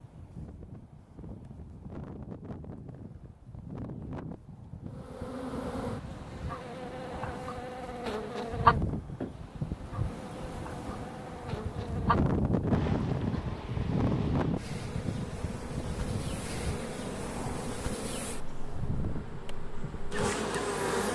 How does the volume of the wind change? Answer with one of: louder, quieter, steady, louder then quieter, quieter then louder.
louder then quieter.